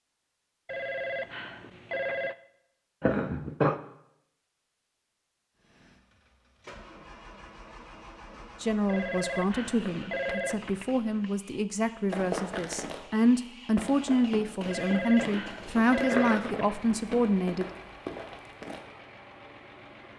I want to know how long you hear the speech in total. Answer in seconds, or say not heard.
9 s.